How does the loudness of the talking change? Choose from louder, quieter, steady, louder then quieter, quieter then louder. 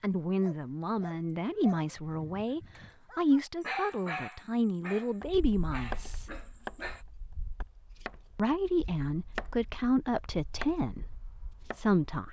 steady.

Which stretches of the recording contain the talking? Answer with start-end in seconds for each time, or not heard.
0.0-6.2, 8.3-12.2.